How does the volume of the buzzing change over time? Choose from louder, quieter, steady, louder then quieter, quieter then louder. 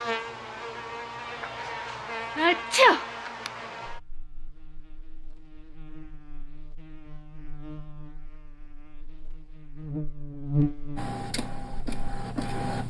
quieter then louder.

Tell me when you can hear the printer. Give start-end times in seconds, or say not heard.
10.9-12.8.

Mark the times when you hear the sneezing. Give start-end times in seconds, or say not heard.
2.4-3.5.